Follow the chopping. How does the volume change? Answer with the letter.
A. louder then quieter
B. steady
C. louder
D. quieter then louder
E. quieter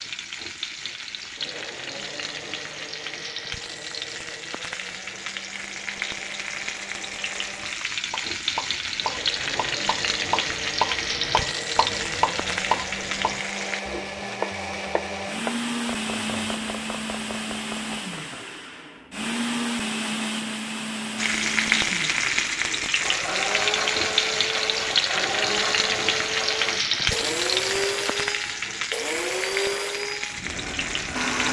A.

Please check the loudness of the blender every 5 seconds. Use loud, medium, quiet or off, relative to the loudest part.
quiet, quiet, medium, loud, loud, loud, loud.